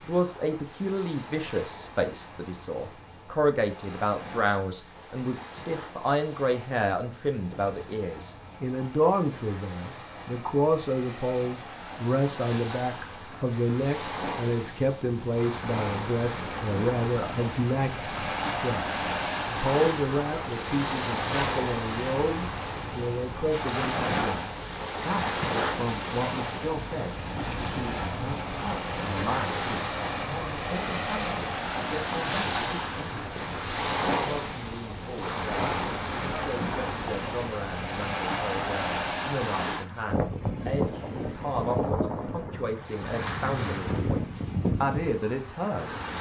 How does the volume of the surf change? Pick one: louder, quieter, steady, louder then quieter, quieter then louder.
louder.